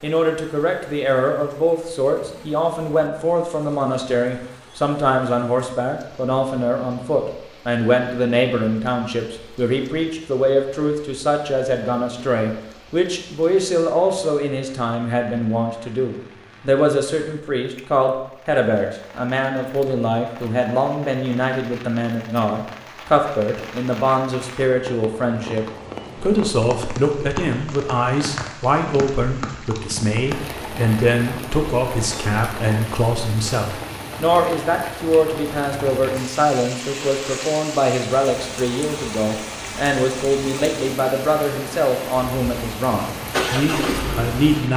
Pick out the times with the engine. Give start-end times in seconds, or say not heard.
42.9-44.5.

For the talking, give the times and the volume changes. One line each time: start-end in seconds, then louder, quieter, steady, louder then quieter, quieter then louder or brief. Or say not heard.
0.0-44.7 steady.